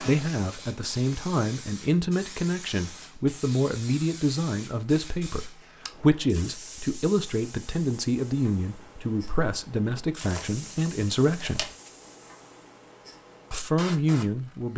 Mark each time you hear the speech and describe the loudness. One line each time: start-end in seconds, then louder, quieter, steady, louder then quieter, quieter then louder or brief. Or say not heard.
0.0-11.7 steady
13.5-14.7 brief.